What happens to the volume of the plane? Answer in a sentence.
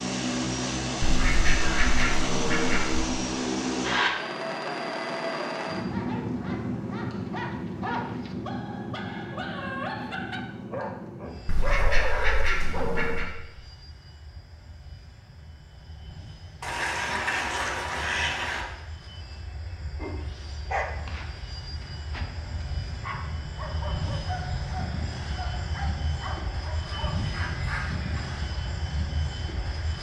The loudness of the plane goes down, then up.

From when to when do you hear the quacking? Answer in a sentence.
The quacking can be heard from 1.0 to 3.0 s, from 11.4 to 13.3 s, from 16.6 to 18.6 s and from 26.9 to 28.4 s.